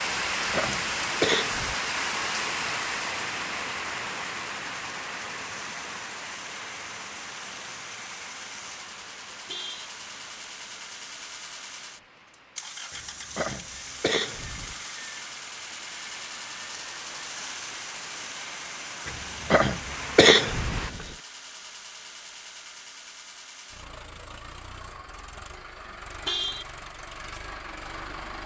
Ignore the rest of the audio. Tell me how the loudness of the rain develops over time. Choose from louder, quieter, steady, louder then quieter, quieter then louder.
quieter then louder.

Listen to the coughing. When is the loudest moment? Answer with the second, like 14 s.
20 s.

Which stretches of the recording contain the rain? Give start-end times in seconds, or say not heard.
0.0-20.9.